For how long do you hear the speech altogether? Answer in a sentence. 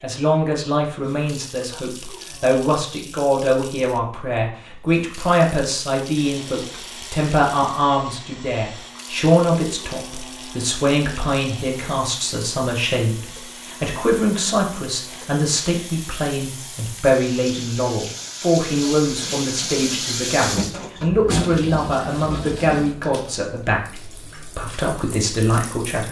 The speech can be heard for 26 seconds in total.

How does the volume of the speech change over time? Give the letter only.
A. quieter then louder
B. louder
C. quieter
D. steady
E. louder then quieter
D.